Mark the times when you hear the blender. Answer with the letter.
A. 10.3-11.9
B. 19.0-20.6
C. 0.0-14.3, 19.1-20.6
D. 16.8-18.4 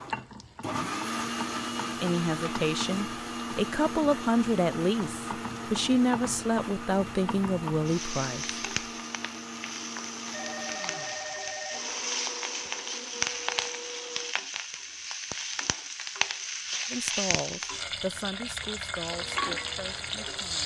C.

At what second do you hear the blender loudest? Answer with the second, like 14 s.
1 s.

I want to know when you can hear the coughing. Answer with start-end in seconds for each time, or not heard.
not heard.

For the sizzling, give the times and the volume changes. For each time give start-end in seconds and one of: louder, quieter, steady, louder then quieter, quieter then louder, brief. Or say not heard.
0.0-20.6 louder.